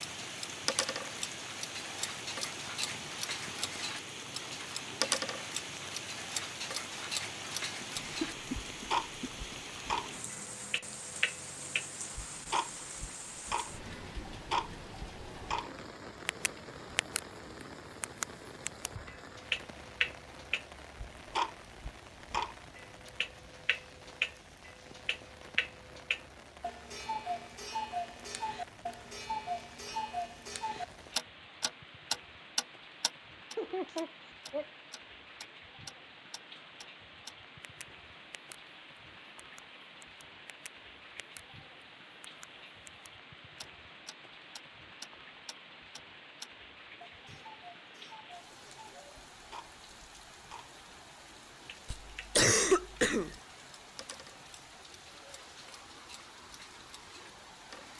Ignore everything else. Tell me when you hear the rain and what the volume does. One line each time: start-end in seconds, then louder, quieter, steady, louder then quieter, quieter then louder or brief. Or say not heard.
0.0-57.9 quieter.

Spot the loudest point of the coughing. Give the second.
53 s.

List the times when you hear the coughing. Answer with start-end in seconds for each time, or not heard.
8.0-9.6, 33.5-34.6, 51.9-53.4.